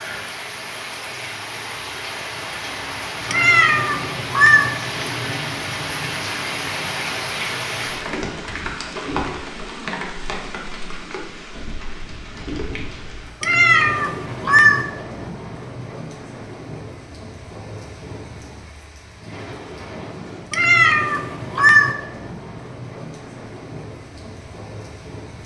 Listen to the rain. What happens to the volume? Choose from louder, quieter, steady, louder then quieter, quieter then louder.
quieter.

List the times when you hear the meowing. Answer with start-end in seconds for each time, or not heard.
3.2-4.7, 13.4-14.8, 20.5-21.9.